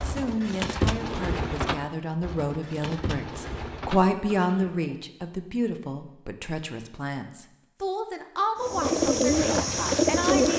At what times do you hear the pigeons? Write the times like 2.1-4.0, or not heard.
0.0-5.0, 8.6-10.5.